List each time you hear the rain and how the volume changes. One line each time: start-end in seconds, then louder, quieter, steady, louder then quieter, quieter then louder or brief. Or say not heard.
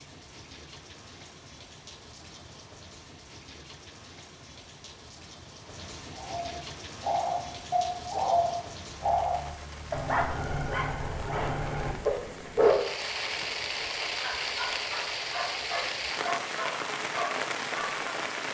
0.0-18.5 louder.